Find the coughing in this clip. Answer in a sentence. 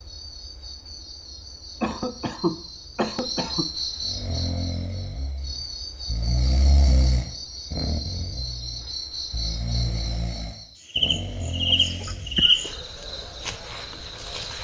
The coughing can be heard from 1.8 to 3.6 s and from 12.1 to 12.8 s.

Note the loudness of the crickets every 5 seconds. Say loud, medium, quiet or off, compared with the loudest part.
medium, medium, loud.